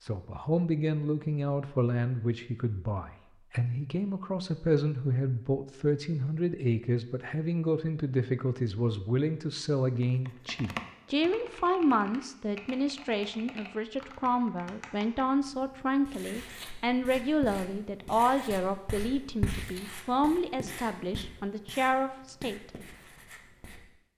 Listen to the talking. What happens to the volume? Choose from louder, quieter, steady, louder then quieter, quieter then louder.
steady.